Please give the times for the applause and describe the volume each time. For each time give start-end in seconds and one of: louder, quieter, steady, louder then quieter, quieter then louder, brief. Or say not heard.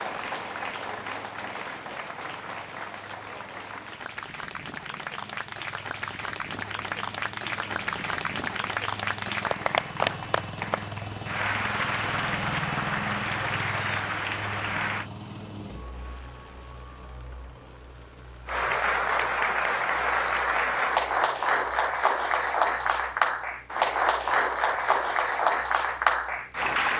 0.0-15.1 louder
18.4-26.9 steady.